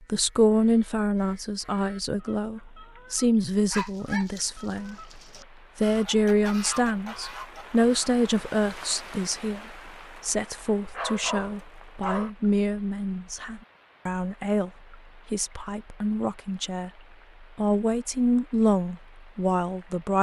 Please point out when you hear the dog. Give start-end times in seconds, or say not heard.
3.7-5.5, 10.9-12.3.